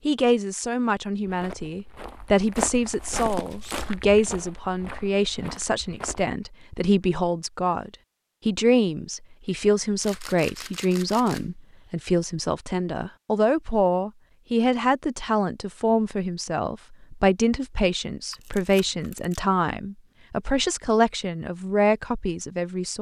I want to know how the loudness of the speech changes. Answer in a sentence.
The volume of the speech stays about the same.